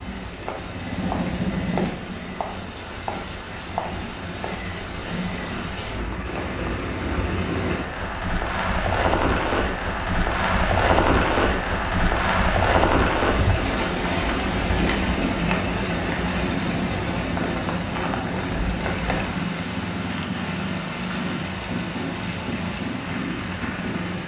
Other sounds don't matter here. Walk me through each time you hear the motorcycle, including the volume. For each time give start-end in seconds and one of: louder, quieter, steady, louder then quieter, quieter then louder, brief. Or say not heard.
0.0-1.9 brief
14.7-24.2 steady.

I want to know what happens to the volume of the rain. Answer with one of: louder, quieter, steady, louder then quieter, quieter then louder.
louder then quieter.